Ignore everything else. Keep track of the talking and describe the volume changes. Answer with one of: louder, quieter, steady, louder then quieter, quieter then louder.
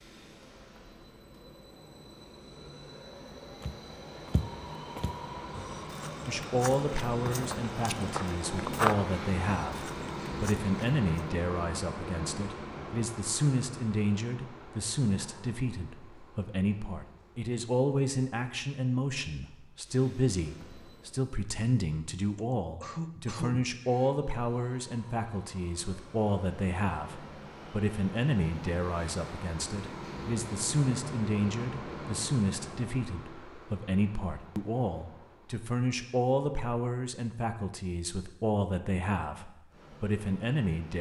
steady.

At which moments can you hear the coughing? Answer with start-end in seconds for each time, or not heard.
22.4-24.1.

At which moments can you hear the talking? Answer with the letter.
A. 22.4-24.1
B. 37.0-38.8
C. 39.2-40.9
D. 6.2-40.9
D.